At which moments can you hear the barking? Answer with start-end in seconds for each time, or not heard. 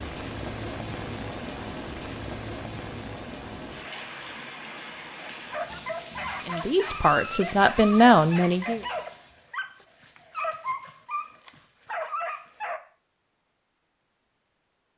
5.2-12.8.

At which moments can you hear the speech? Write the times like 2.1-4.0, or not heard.
6.5-8.8.